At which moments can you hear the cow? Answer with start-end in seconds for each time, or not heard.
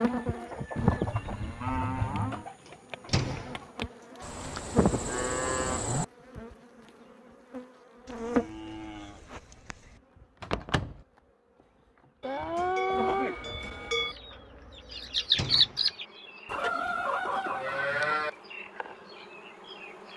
0.8-2.5, 4.2-6.0, 8.1-9.9, 12.2-14.2, 16.4-18.3.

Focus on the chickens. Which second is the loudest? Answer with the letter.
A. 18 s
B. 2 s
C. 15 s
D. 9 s
C.